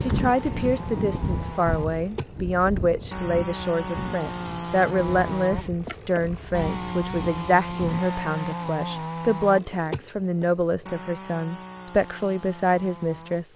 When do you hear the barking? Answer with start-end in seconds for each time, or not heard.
not heard.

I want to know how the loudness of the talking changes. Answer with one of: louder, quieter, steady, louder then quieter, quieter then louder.
steady.